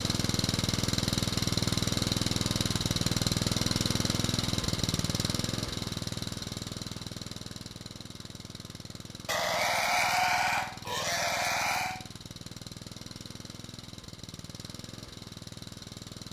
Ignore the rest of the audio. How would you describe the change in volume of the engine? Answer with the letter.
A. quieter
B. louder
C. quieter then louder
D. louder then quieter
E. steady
A.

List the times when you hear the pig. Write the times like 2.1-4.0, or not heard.
9.2-12.0.